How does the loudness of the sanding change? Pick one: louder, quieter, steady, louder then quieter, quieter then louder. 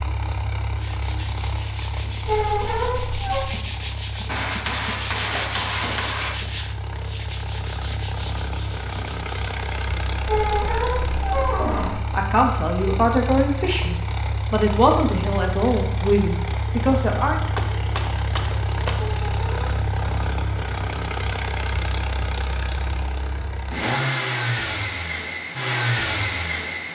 louder then quieter.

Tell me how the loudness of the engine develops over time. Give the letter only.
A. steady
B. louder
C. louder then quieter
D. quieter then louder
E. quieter
B.